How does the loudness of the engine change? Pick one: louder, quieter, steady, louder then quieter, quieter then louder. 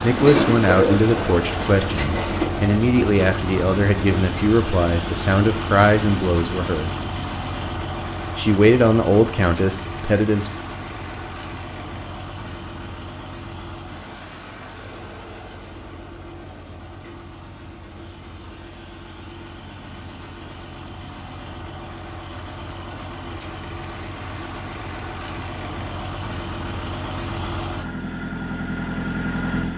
quieter then louder.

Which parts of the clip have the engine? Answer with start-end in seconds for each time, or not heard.
0.0-29.7.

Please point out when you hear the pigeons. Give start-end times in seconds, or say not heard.
0.1-2.5.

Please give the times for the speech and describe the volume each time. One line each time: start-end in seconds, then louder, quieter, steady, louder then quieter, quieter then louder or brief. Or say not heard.
0.0-7.0 steady
8.3-10.5 brief.